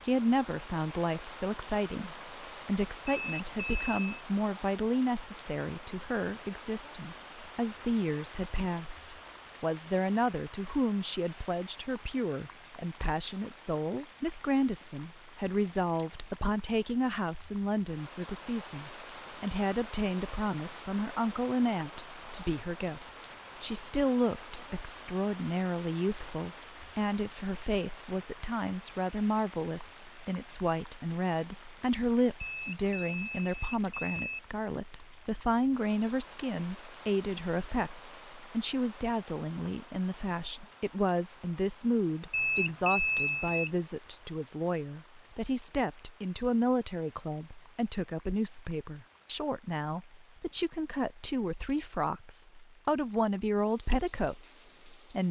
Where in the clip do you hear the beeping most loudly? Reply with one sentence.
The volume of the beeping peaks at 43 seconds.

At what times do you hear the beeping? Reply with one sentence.
The beeping can be heard from 3.0 to 4.2 s, from 32.4 to 34.4 s and from 42.3 to 43.7 s.